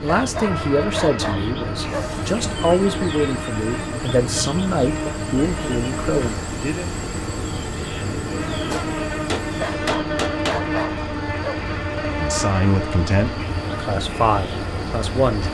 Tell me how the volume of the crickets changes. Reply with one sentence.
The volume of the crickets stays about the same.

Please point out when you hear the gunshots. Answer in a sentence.
The gunshots can be heard from 8.7 to 10.6 s.